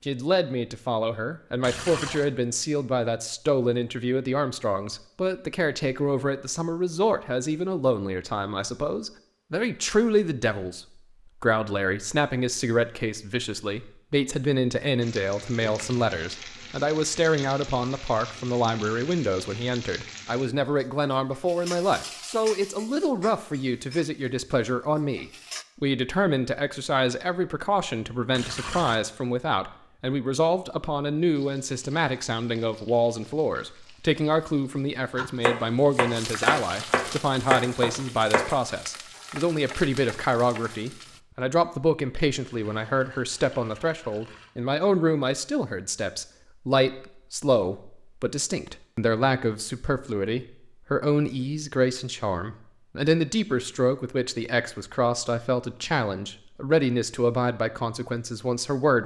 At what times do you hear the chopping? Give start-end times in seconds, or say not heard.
35.1-40.9.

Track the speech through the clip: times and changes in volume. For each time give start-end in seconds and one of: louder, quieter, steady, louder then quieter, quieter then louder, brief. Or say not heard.
0.1-59.0 steady.